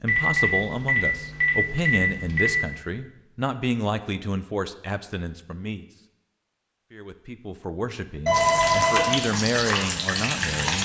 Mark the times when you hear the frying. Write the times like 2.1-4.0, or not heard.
8.3-10.8.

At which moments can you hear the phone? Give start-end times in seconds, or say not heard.
0.1-2.5, 8.2-9.2.